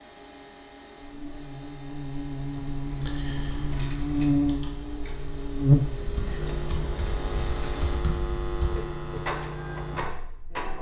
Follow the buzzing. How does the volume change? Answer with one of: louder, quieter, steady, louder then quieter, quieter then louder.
louder then quieter.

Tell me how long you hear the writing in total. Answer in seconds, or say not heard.
not heard.